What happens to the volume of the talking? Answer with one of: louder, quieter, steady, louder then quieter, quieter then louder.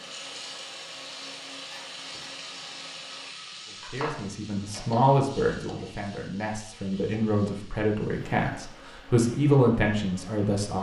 quieter then louder.